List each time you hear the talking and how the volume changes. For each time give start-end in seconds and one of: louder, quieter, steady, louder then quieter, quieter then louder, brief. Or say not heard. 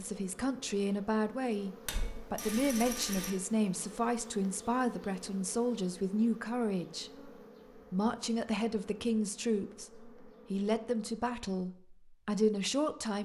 0.0-13.1 steady.